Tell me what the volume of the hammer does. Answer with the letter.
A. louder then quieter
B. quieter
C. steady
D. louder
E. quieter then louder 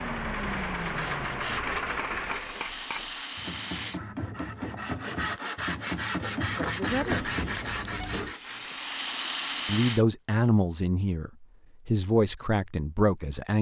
D.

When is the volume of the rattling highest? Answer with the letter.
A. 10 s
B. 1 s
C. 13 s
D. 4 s
A.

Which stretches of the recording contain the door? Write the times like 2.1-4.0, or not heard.
6.8-8.3.